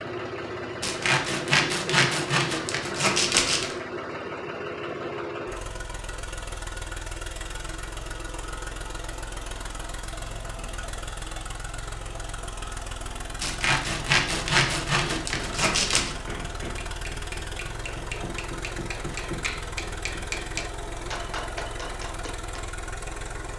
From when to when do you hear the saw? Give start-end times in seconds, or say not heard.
0.8-3.8, 13.4-16.1.